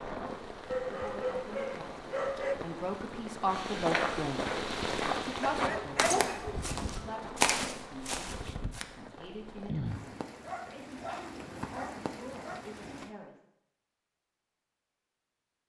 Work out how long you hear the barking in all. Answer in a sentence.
You can hear the barking for 6 seconds altogether.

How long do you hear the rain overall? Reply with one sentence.
The rain can be heard for 13 seconds in total.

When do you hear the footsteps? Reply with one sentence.
The footsteps can be heard from 3.5 to 8.8 s.